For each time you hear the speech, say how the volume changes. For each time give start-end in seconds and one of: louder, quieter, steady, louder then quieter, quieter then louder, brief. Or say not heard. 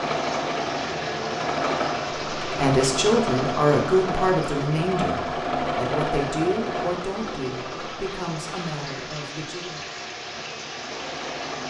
2.5-9.8 quieter.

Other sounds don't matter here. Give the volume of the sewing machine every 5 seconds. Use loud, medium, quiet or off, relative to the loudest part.
loud, loud, medium.